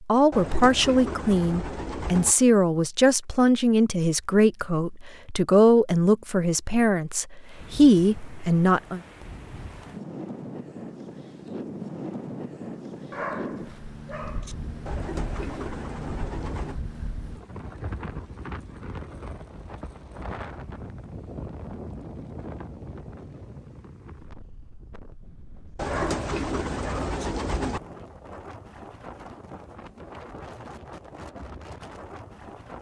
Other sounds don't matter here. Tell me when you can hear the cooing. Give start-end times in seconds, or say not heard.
0.3-2.4, 14.8-16.8, 25.8-27.8.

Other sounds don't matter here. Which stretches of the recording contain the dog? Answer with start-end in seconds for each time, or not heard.
13.1-14.6, 25.9-27.2.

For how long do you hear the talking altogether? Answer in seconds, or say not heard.
9 s.